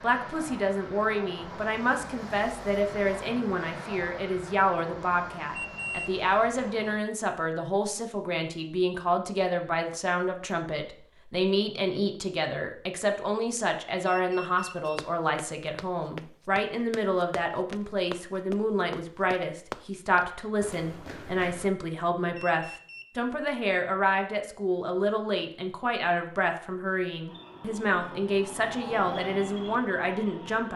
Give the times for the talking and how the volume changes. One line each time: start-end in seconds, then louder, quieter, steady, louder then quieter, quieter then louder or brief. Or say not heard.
0.0-30.7 steady.